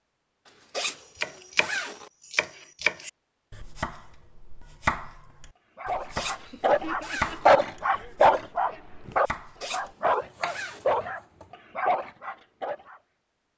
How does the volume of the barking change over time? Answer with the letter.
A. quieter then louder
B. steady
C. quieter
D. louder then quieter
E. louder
D.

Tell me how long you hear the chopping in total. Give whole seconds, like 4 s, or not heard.
11 s.